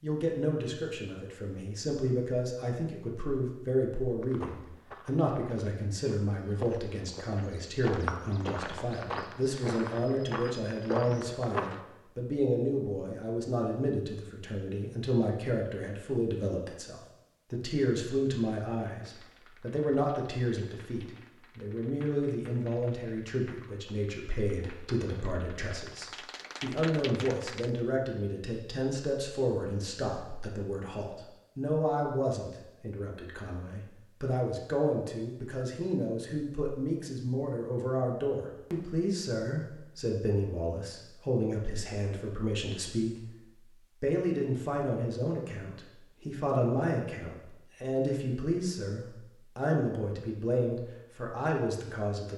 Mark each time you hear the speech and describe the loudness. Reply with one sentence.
You can hear the speech from 0.0 to 43.2 s, at a steady volume; and from 44.0 to 52.3 s, at a steady volume.